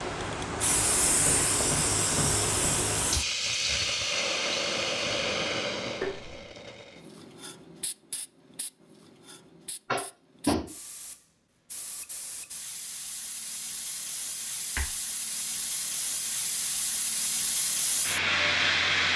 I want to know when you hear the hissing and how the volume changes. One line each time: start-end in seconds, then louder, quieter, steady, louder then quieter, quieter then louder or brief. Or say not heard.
0.0-19.1 quieter then louder.